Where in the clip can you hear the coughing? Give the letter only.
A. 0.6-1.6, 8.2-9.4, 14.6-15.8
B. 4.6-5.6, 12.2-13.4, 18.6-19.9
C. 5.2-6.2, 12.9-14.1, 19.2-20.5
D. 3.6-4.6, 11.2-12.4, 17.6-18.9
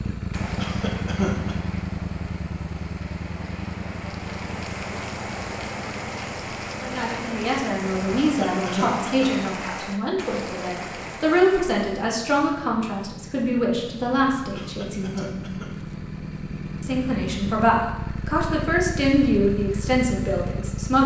A.